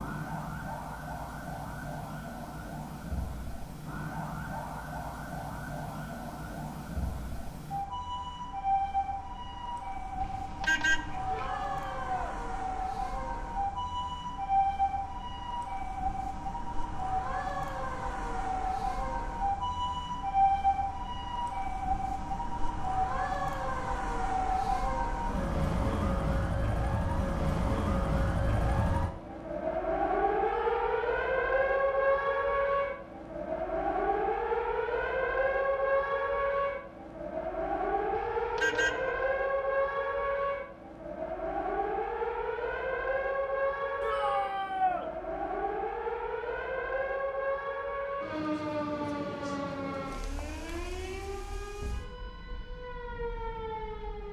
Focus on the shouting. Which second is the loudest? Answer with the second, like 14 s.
45 s.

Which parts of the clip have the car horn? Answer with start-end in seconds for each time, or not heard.
10.2-11.5, 38.1-39.2.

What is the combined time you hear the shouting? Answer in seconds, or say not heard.
3 s.